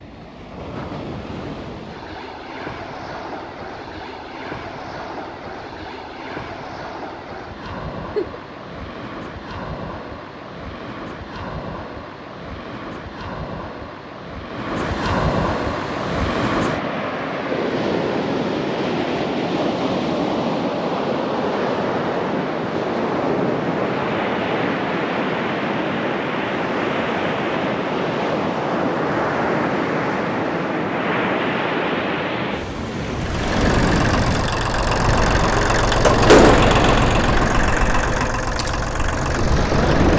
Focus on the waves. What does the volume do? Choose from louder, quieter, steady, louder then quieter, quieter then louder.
louder.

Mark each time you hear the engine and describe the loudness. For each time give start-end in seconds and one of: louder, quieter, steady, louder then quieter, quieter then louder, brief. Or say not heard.
33.1-40.1 louder then quieter.